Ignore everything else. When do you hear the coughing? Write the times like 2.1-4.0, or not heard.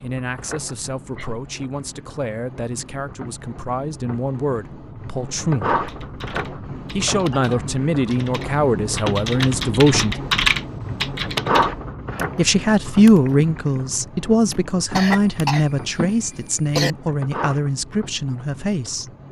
0.7-1.3, 7.0-7.7, 14.9-16.9.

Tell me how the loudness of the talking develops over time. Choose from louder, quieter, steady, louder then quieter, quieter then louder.
louder then quieter.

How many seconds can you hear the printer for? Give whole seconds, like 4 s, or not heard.
19 s.